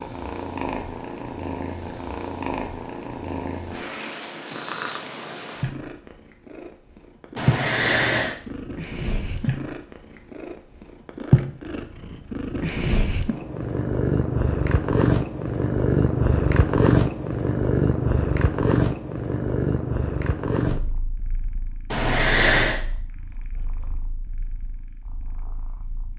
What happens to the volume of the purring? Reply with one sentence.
The loudness of the purring goes up, then down.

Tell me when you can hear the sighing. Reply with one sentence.
The sighing can be heard from 7.3 to 8.4 s and from 21.9 to 22.8 s.